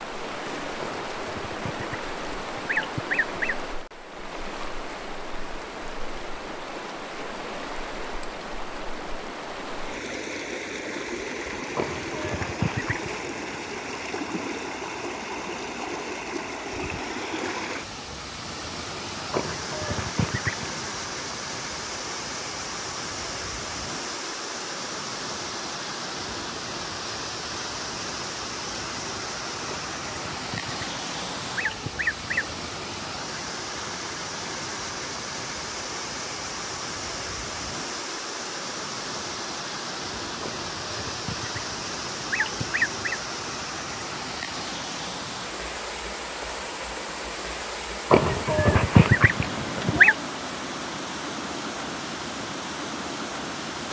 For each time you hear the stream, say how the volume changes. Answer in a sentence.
You can hear the stream from 0.0 to 53.8 s, at a steady volume.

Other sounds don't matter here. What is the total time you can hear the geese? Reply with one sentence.
The geese can be heard for 14 seconds in total.